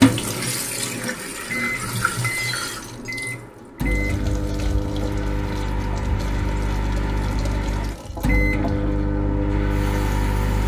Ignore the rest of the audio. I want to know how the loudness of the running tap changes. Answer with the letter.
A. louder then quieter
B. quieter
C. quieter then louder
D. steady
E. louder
B.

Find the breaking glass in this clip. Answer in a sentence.
You can hear the breaking glass from 2.1 to 3.1 s.